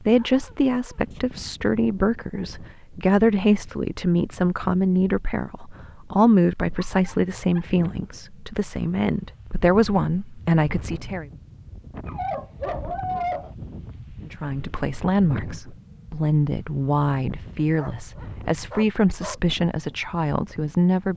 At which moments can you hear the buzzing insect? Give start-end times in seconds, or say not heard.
not heard.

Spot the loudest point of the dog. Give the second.
13 s.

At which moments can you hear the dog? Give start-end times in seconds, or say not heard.
0.1-1.4, 6.8-7.7, 12.1-13.6, 17.8-19.4.